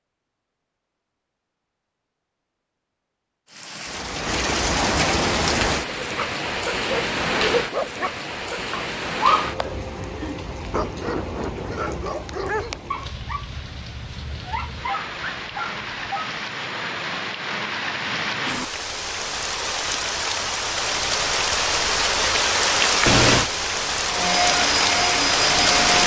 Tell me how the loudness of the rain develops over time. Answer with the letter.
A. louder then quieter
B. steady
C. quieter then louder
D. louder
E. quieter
C.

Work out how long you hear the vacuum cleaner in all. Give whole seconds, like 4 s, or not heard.
2 s.